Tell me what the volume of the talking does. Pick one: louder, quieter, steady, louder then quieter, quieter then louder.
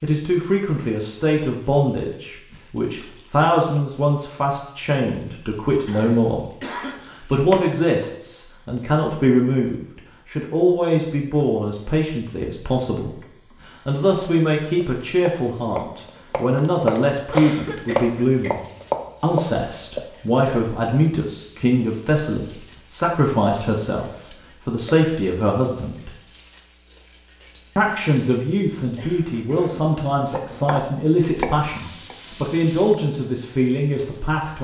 steady.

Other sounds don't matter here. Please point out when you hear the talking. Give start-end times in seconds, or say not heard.
0.0-18.6, 19.2-26.1, 27.8-34.5.